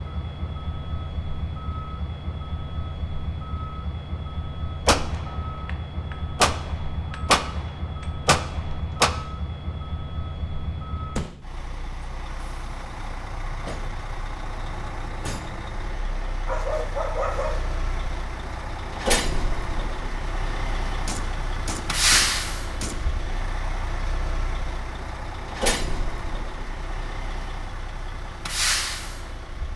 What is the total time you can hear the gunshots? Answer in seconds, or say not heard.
6 s.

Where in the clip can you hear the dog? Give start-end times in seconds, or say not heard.
16.4-17.6.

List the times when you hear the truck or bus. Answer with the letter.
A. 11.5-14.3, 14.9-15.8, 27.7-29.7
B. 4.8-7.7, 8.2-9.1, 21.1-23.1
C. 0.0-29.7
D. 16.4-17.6
C.